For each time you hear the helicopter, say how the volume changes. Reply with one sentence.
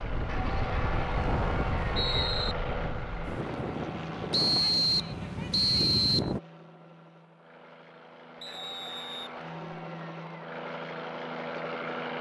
The helicopter can be heard from 0.0 to 12.1 s, getting quieter then louder.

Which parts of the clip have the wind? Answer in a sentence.
The wind can be heard from 0.0 to 6.4 s.